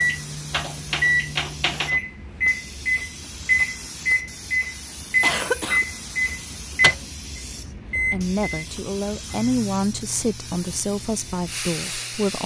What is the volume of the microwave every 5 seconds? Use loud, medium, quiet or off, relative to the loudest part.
loud, loud, quiet.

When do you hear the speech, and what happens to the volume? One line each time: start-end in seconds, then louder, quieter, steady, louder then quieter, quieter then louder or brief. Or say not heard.
8.1-12.4 louder then quieter.